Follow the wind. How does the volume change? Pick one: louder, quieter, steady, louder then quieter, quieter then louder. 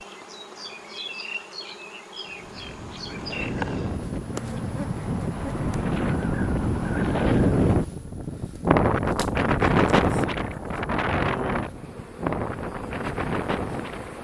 louder then quieter.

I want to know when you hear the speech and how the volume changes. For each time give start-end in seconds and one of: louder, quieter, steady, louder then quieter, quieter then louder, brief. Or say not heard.
not heard.